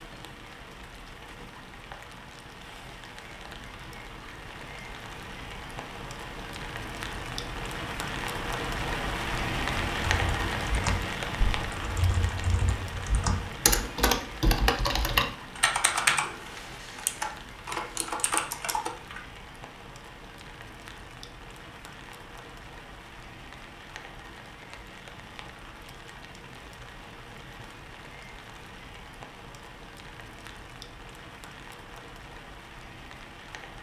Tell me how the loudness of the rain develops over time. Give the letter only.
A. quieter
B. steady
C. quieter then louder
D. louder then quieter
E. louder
D.